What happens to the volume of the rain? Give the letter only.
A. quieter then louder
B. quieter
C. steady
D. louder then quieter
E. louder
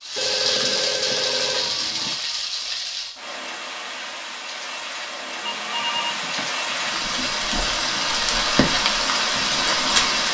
A.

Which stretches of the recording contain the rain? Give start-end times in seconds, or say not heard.
0.0-10.2.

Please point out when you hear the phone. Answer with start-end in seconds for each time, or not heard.
0.1-2.1, 5.4-7.1.